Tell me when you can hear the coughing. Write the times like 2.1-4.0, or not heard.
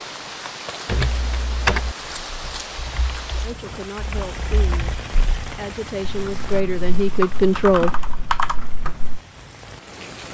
not heard.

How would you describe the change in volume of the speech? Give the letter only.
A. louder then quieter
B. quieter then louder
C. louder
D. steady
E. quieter
C.